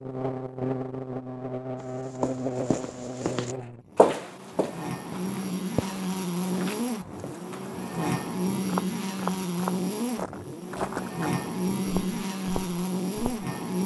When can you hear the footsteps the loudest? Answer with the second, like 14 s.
4 s.